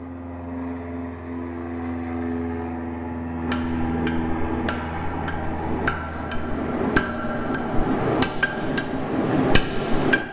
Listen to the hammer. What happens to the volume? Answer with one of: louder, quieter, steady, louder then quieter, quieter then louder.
louder.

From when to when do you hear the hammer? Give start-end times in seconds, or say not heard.
3.4-10.2.